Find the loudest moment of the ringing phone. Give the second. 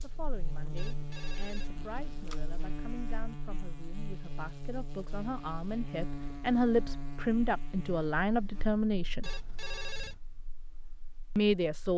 10 s.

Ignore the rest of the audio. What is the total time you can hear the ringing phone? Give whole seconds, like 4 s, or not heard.
3 s.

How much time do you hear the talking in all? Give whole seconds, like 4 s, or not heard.
10 s.